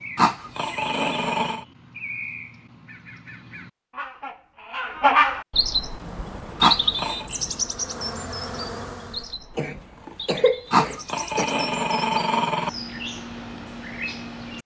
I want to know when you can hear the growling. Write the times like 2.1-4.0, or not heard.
0.1-1.6, 6.6-7.2, 10.7-12.7.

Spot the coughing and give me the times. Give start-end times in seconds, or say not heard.
9.6-11.4.